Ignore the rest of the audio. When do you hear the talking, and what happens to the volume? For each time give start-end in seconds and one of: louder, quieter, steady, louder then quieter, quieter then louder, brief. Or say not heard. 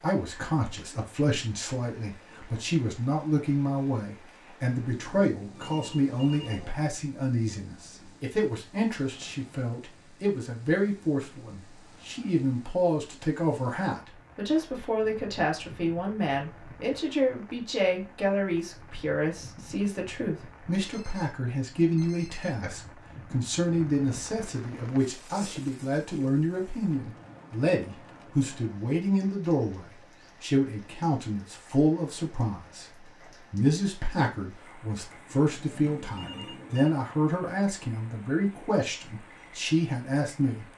0.0-40.6 steady.